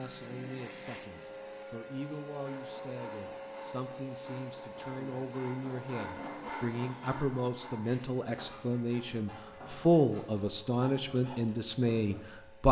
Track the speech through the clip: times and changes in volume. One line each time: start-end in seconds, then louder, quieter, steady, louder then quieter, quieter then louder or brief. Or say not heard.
0.0-12.6 louder.